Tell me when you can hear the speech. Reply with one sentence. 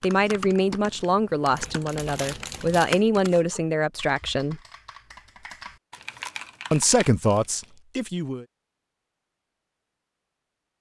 The speech can be heard from 0.0 to 4.6 s and from 6.7 to 8.4 s.